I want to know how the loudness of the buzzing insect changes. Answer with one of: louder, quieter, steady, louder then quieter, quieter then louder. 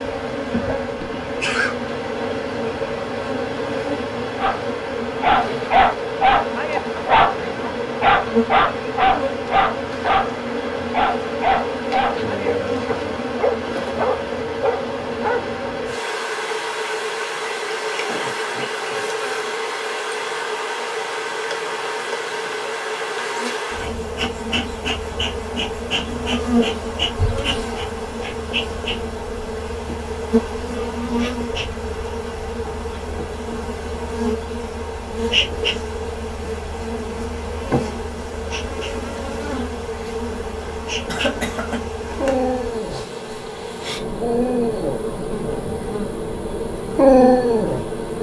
steady.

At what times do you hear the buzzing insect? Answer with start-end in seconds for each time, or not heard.
0.0-48.1.